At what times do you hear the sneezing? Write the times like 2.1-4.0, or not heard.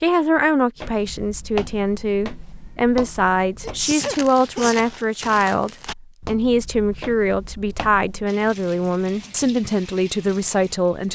3.6-4.8.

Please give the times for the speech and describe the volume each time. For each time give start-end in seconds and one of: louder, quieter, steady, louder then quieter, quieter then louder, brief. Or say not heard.
0.0-11.1 steady.